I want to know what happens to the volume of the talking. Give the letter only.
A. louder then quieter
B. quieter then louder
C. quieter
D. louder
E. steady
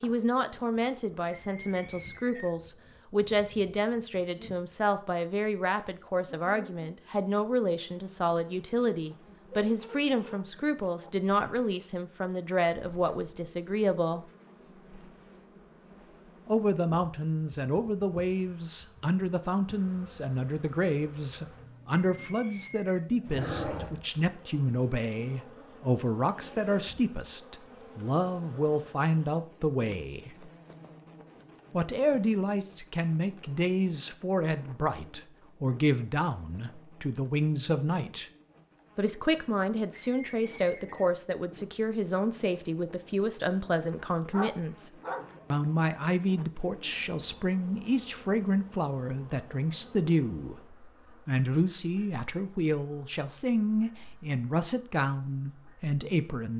E.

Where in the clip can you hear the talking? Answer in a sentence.
You can hear the talking from 0.0 to 14.2 s, from 16.4 to 30.5 s, from 31.7 to 38.2 s, from 39.0 to 44.9 s and from 45.5 to 56.5 s.